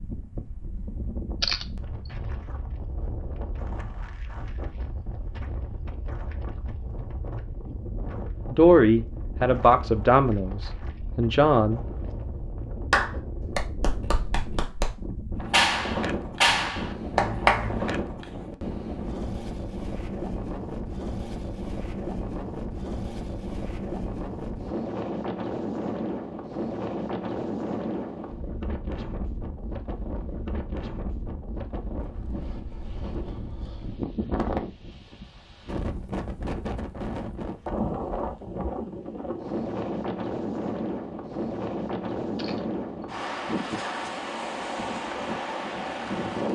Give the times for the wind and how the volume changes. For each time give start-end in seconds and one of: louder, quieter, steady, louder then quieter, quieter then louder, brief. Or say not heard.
0.0-46.4 louder.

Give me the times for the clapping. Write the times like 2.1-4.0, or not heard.
12.9-17.9.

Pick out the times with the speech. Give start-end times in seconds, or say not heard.
8.4-12.1.